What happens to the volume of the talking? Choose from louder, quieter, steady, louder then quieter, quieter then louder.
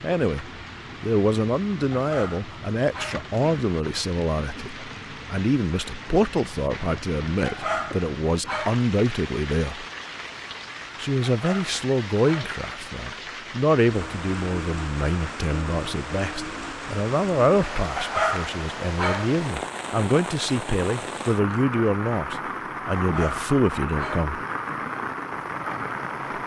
steady.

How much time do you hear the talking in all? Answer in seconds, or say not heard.
23 s.